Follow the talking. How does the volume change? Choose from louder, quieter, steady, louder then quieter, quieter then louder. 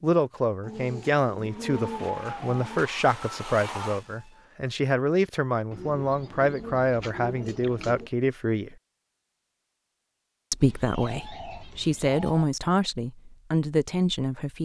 steady.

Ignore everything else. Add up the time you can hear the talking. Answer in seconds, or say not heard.
13 s.